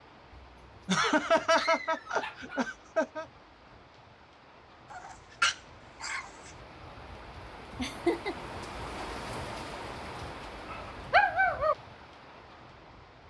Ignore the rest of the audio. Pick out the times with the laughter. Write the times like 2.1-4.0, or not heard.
0.8-3.2, 7.8-8.3.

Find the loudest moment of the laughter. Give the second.
1 s.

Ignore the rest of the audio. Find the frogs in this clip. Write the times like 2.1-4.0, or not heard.
not heard.